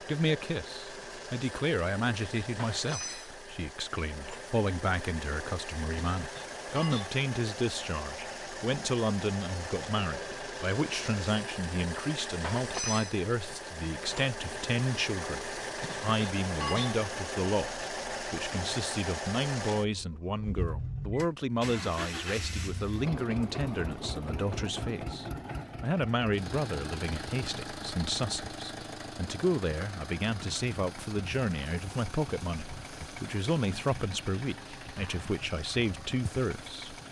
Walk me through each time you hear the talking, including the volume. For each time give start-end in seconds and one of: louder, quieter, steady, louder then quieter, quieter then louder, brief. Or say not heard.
0.0-37.0 steady.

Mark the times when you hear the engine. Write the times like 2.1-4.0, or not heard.
0.0-37.0.